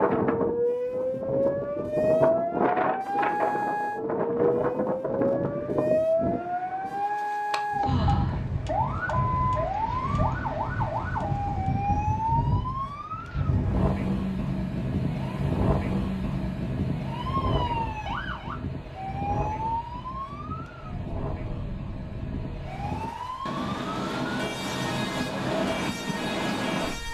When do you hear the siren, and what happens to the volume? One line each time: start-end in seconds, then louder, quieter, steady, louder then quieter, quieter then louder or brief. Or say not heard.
0.2-27.0 quieter.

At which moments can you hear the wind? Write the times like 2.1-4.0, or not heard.
0.0-27.0.